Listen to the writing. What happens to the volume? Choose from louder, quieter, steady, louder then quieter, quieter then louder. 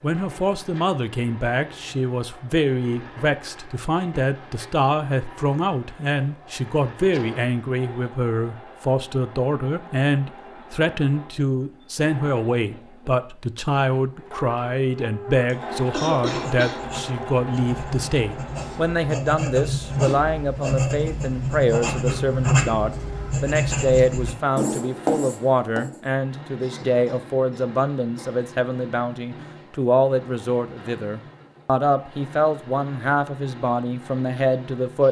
louder.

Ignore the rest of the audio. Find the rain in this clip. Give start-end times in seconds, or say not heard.
not heard.